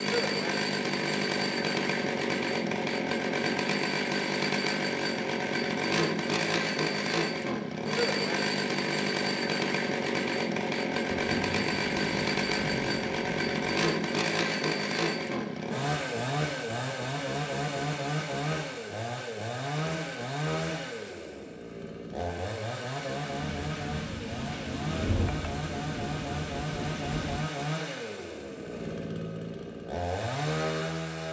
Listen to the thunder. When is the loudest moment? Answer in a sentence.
The volume of the thunder peaks at 25 seconds.